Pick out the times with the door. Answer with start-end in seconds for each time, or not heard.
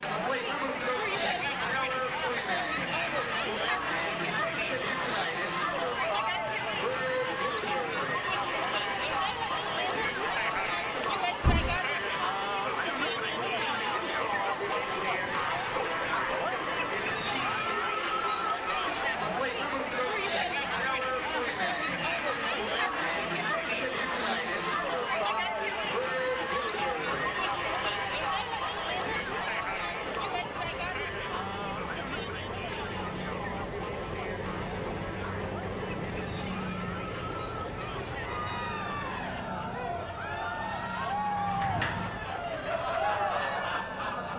11.4-11.8, 41.4-42.8.